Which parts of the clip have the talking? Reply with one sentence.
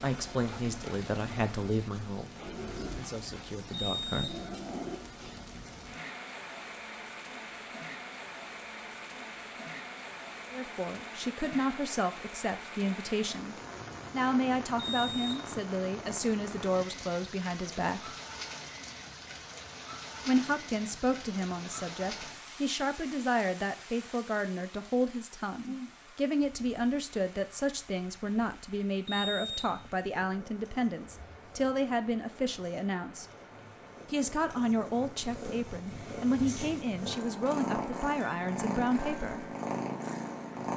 You can hear the talking from 0.0 to 4.3 s, from 10.5 to 18.1 s, from 20.2 to 33.2 s and from 34.1 to 39.5 s.